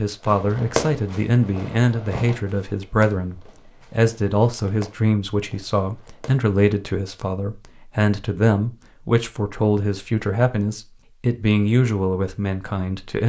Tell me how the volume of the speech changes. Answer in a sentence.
The loudness of the speech stays about the same.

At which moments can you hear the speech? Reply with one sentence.
You can hear the speech from 0.0 to 13.2 s.